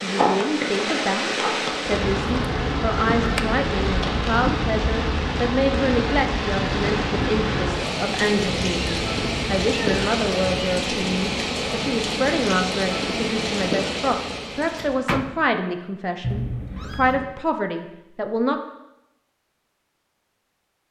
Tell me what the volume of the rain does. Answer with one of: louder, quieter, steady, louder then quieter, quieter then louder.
steady.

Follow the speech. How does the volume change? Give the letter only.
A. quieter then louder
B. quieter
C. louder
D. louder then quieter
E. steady
E.